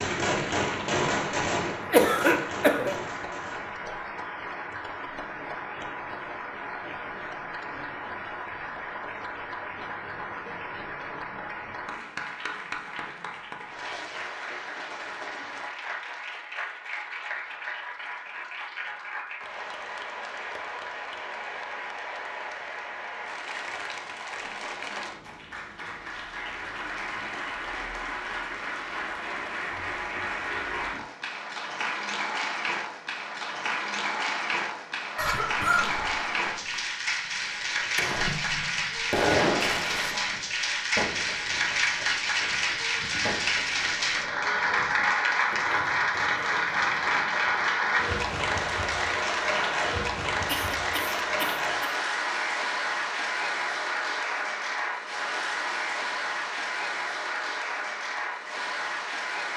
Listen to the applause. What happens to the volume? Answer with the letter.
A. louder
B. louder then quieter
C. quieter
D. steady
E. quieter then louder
A.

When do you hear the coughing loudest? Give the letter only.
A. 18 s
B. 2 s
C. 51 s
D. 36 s
B.